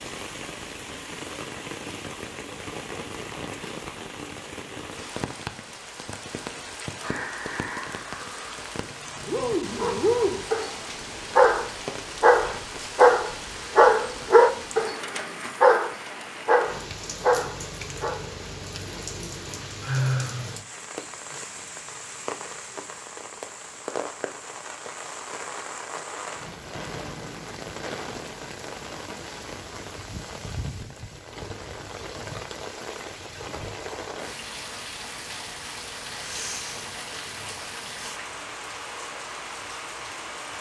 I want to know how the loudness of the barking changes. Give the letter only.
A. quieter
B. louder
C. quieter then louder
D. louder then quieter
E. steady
D.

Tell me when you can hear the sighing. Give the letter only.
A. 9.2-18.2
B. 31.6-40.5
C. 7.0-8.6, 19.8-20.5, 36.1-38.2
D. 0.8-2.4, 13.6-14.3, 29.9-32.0
C.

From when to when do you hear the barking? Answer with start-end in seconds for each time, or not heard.
9.2-18.2.